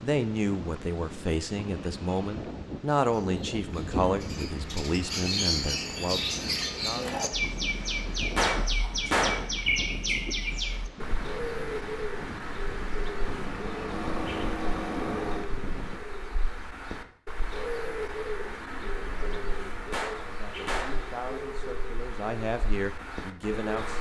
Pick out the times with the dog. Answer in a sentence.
You can't hear the dog here.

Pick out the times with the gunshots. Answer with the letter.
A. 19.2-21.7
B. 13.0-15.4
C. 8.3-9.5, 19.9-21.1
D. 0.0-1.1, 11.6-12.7
C.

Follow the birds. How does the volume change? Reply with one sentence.
The loudness of the birds goes down.